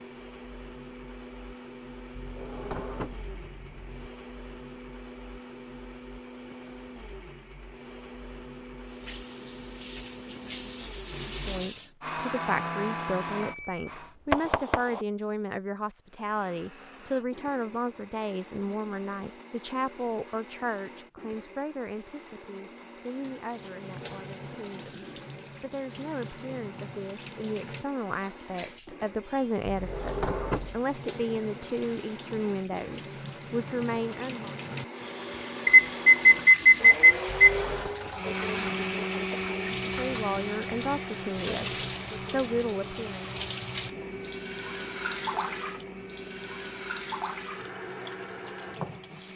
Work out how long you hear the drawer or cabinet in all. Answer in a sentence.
You can hear the drawer or cabinet for 4 seconds altogether.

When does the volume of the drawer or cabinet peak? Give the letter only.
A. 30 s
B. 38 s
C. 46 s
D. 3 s
A.